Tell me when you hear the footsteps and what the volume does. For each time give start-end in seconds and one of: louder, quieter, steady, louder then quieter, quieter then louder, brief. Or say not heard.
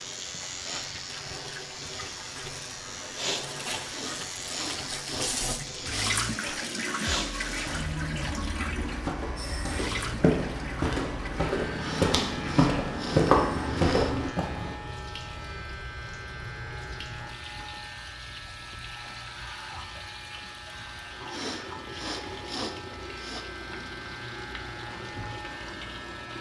8.8-14.8 louder.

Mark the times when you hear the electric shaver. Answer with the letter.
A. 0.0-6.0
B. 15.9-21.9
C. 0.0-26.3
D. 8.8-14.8
C.